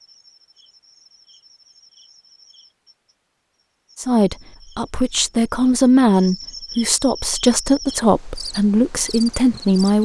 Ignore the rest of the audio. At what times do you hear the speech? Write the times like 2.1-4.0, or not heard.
4.0-10.0.